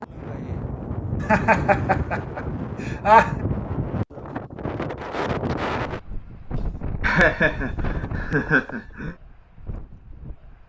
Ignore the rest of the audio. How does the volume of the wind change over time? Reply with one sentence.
The loudness of the wind goes down.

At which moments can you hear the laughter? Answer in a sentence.
The laughter can be heard from 1.2 to 3.4 s and from 6.5 to 9.2 s.